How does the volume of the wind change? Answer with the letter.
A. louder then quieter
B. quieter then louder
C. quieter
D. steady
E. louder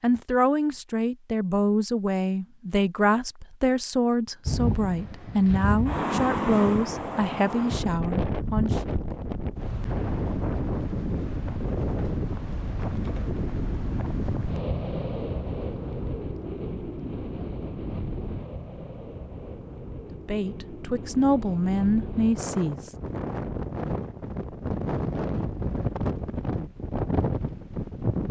B.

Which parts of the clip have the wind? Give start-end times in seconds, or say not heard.
4.5-28.2.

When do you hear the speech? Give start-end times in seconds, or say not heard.
0.0-8.8, 20.1-22.9.